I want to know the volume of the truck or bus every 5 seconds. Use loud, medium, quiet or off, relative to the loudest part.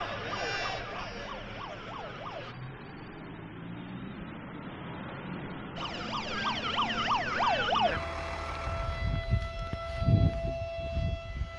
loud, loud, off.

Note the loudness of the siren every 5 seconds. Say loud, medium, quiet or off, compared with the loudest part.
medium, loud, loud.